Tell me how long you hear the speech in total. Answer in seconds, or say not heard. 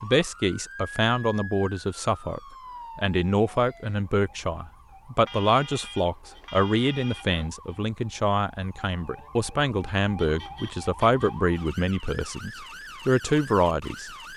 14 s.